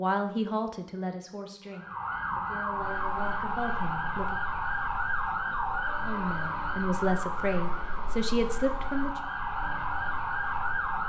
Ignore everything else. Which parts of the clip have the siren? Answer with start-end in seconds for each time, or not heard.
1.6-11.0.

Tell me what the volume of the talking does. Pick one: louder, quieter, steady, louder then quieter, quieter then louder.
quieter then louder.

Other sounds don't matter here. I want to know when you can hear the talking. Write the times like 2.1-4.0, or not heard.
0.0-4.4, 6.0-9.2.